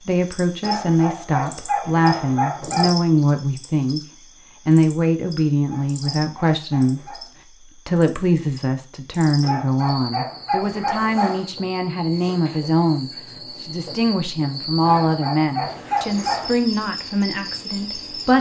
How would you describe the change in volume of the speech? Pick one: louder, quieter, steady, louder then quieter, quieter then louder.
steady.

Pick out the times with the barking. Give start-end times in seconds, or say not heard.
0.6-2.9, 5.7-7.3, 9.4-11.4, 14.8-16.5.